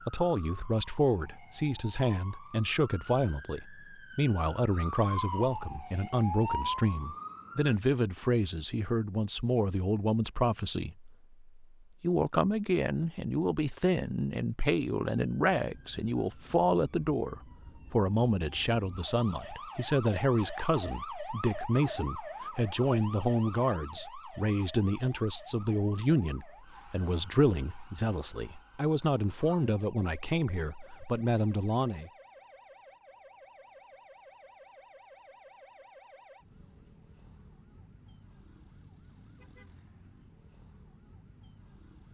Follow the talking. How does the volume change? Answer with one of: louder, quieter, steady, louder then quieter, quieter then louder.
steady.